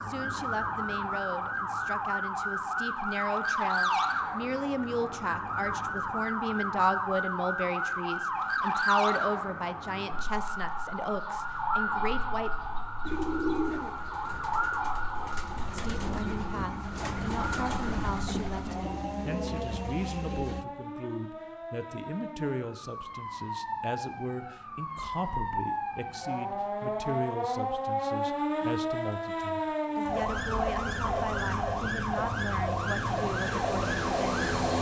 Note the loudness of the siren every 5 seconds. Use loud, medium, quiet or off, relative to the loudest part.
loud, loud, loud, medium, medium, loud, loud.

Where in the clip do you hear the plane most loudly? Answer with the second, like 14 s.
34 s.